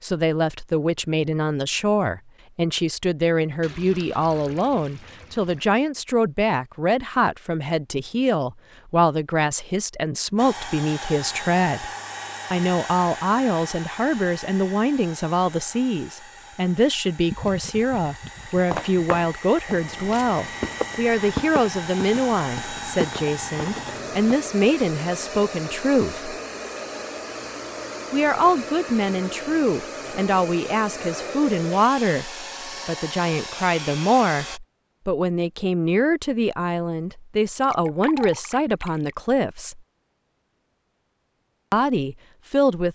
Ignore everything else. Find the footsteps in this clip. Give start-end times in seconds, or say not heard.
18.7-24.5.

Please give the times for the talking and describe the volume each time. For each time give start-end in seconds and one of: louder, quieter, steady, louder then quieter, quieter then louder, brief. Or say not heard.
0.0-11.9 steady
12.5-26.3 steady
28.1-39.8 steady
41.7-42.9 brief.